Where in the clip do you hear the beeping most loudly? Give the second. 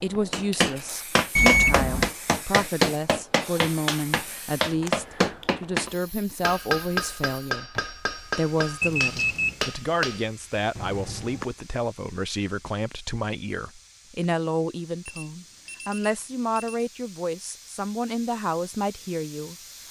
2 s.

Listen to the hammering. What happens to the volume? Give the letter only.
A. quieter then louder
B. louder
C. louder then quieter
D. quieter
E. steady
D.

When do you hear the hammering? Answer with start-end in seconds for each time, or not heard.
0.3-11.4.